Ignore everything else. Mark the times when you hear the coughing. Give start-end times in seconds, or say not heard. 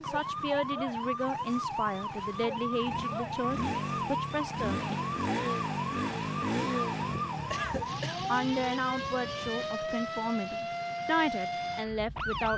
7.5-8.3.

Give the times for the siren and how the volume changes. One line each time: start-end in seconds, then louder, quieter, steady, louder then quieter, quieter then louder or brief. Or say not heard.
0.0-12.5 steady.